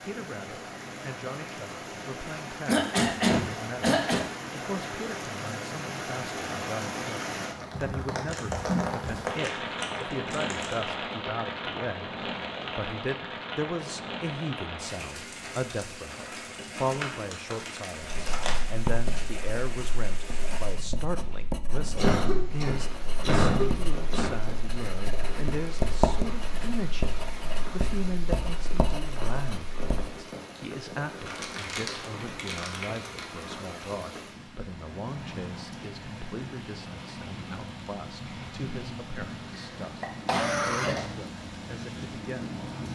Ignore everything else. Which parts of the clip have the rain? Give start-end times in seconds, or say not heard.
0.0-42.8.